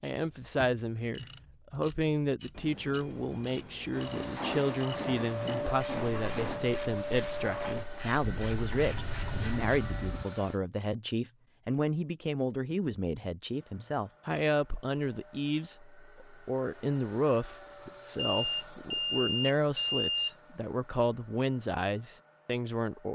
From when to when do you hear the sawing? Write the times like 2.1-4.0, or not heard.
4.2-6.8.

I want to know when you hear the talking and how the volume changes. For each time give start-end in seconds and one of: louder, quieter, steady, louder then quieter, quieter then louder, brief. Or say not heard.
0.0-23.1 steady.